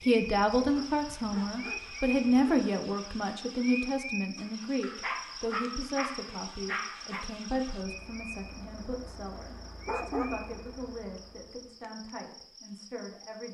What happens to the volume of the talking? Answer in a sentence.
The loudness of the talking goes down.